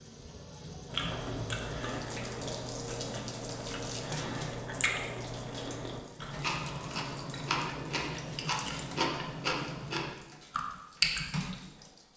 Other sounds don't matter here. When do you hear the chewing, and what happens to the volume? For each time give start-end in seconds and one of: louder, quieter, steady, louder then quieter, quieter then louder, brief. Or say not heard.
0.8-11.6 louder.